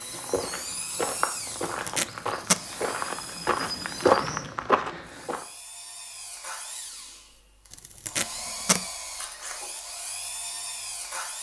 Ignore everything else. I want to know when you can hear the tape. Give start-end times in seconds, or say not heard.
1.6-2.6, 7.7-8.8.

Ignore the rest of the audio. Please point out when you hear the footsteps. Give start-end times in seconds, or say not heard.
0.0-5.5.